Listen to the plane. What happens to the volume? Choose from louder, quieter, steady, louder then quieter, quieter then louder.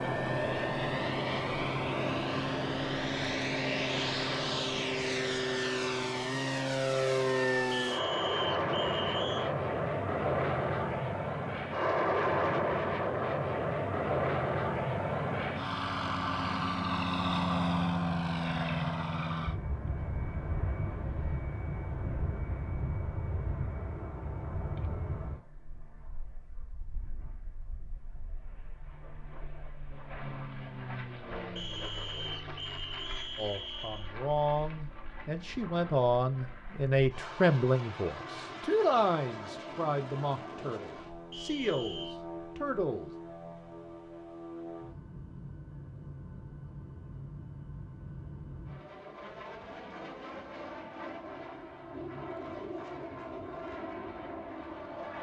quieter.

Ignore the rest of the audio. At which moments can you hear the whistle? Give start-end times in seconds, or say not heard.
7.7-9.6, 31.6-34.1, 41.3-42.2.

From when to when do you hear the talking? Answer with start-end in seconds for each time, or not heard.
33.4-43.1.